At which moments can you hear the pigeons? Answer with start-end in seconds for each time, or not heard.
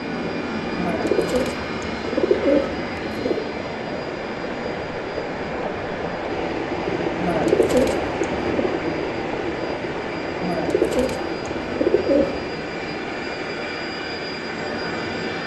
0.8-3.4, 7.2-8.8, 10.4-12.4.